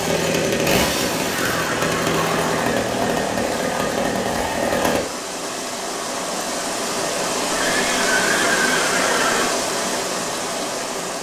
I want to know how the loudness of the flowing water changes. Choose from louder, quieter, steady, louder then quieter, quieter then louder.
louder.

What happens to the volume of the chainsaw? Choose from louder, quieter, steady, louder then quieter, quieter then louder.
steady.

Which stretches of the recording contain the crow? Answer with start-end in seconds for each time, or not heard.
not heard.